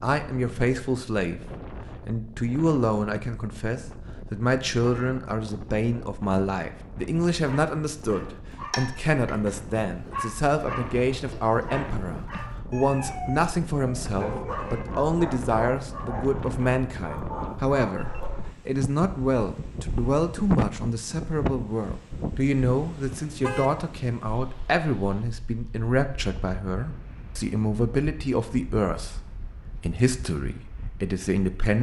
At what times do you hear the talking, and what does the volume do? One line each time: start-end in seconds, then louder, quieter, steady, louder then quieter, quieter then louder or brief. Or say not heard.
0.0-31.7 steady.